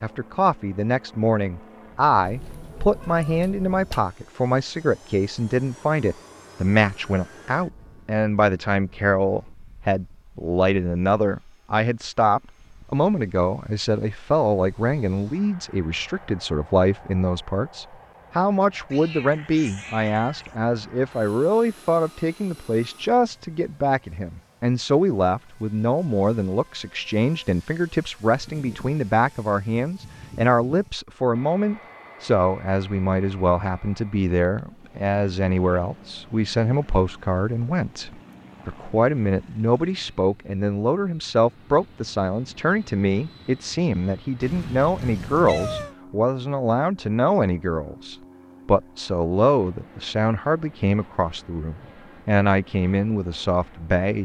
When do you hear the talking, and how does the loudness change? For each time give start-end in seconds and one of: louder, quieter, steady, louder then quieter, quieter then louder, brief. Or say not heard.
0.0-54.2 steady.